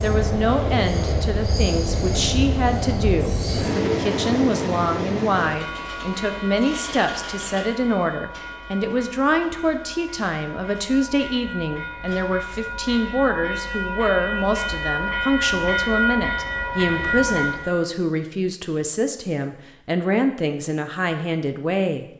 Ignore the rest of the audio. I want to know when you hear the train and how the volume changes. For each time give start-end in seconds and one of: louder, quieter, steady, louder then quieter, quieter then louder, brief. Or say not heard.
0.0-17.9 quieter then louder.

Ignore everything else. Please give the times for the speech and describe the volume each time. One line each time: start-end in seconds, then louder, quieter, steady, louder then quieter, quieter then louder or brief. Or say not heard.
0.0-22.1 steady.